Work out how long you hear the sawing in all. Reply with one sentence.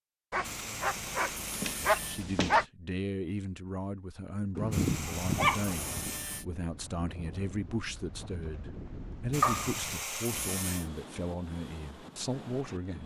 The sawing can be heard for 5 seconds in total.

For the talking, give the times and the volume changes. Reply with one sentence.
The talking can be heard from 1.9 to 13.0 s, at a steady volume.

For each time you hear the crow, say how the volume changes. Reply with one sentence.
The crow can't be heard in this clip.